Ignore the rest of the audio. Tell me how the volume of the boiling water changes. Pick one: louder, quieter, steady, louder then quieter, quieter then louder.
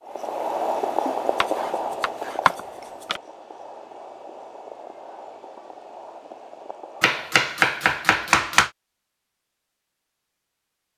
quieter.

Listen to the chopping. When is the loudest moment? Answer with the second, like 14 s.
8 s.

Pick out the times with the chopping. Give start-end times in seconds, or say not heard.
1.4-3.2, 7.0-8.7.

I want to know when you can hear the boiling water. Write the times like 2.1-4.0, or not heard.
0.0-7.3.